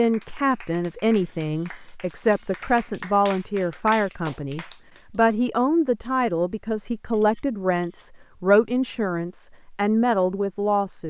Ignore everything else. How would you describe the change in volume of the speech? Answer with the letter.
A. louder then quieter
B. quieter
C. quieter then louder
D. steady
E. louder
D.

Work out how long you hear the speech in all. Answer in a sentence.
You can hear the speech for 11 seconds altogether.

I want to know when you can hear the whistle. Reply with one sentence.
The whistle can't be heard in this clip.